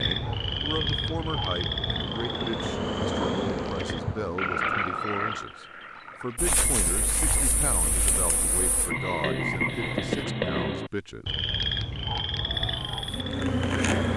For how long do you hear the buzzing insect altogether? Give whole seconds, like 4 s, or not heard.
10 s.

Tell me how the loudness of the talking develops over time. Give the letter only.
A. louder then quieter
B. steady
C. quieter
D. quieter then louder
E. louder
B.